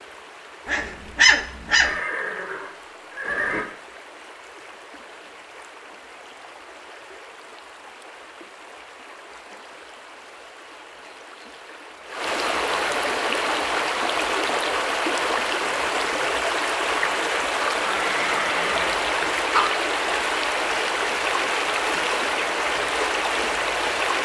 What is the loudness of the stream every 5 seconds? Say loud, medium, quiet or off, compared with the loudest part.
quiet, quiet, loud, loud, loud.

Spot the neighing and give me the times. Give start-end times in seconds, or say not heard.
1.8-3.6, 17.8-19.1.